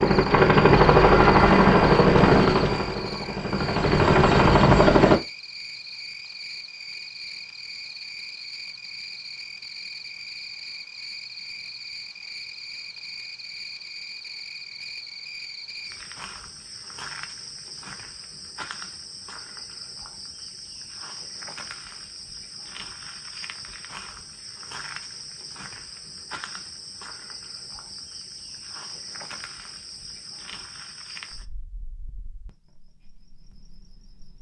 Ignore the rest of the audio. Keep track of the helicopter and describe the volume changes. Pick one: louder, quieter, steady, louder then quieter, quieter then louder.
quieter then louder.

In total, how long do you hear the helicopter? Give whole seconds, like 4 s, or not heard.
5 s.